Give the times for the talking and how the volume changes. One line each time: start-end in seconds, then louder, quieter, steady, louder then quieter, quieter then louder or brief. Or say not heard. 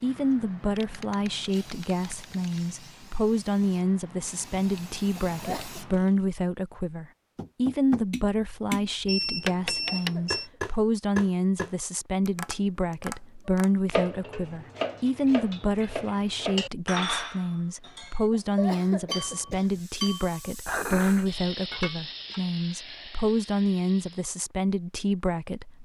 0.0-25.8 steady.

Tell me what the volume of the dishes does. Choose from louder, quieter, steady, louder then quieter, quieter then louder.
steady.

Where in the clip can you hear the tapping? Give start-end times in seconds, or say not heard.
7.3-13.9.